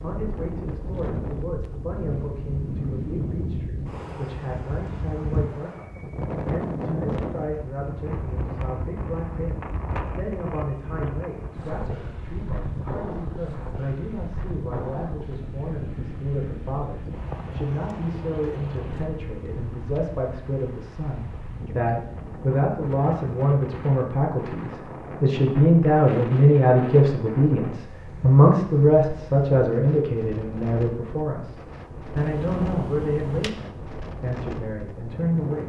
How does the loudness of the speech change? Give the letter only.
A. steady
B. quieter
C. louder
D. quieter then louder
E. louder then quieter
C.